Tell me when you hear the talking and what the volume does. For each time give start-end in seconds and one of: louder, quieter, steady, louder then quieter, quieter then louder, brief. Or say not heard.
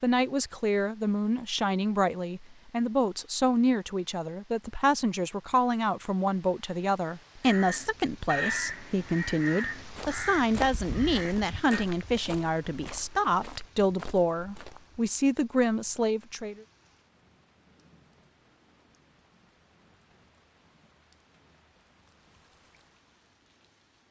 0.0-16.6 steady.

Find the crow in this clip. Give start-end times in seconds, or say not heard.
7.5-11.8.